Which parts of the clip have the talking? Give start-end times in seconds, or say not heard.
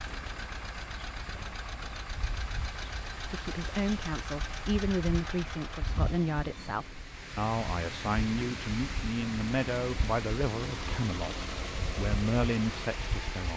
3.2-13.5.